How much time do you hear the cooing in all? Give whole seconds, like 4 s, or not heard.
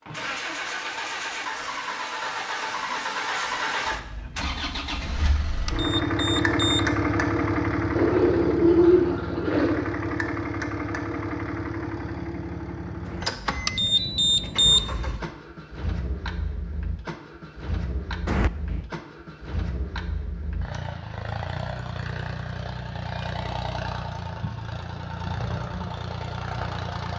2 s.